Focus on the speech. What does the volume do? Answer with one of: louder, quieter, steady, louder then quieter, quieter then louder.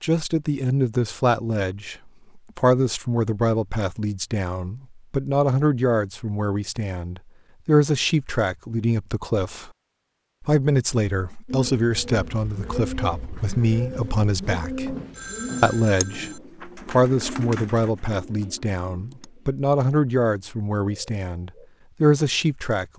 steady.